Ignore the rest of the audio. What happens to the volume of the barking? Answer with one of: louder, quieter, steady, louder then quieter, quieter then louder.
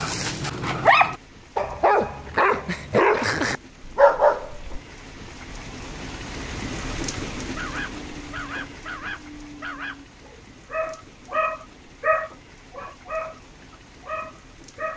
quieter then louder.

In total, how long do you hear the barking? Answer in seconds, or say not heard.
12 s.